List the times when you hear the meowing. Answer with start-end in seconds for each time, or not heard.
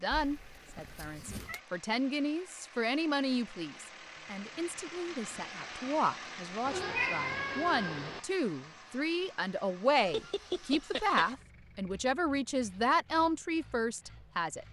0.1-1.6, 6.7-8.2, 10.0-11.3.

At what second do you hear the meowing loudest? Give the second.
7 s.